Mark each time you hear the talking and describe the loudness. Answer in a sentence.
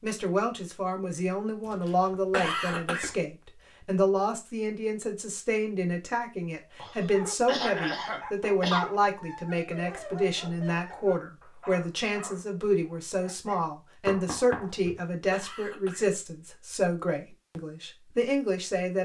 You can hear the talking from 0.0 to 19.0 s, at a steady volume.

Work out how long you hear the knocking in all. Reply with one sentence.
The knocking can be heard for 2 seconds in total.